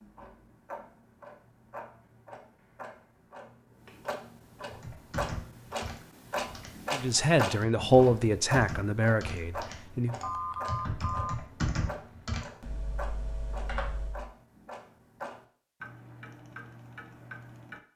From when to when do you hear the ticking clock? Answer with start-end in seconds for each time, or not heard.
0.0-17.8.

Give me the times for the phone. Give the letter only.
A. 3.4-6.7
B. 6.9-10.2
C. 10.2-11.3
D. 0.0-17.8
C.